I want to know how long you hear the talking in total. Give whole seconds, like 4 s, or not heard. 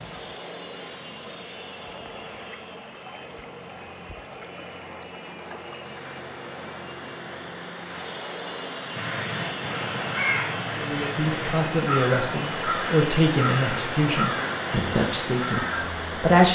6 s.